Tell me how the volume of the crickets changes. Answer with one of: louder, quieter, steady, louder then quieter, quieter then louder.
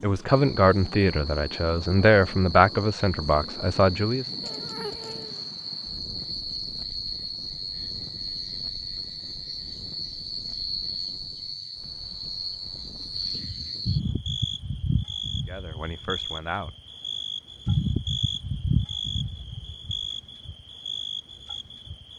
louder.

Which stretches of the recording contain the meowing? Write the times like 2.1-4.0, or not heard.
4.4-5.5.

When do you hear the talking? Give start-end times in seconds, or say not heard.
0.0-4.2, 15.4-16.7.